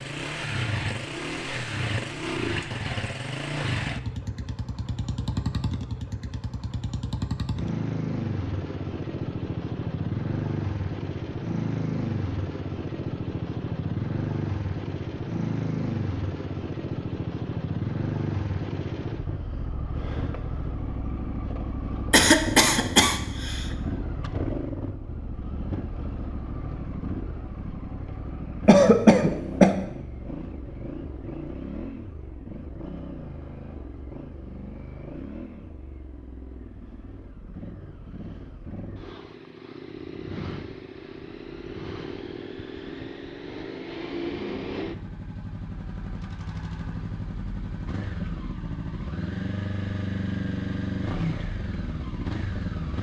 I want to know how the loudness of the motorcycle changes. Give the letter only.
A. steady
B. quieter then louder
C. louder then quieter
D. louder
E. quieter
B.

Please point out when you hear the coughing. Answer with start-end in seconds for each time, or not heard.
22.1-23.6, 28.6-29.8.